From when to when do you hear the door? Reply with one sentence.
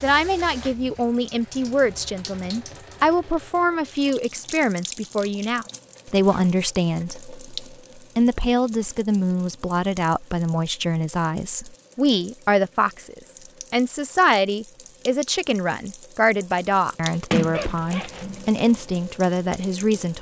You can hear the door from 17.3 to 18.4 s.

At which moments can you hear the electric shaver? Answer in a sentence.
You can't hear the electric shaver here.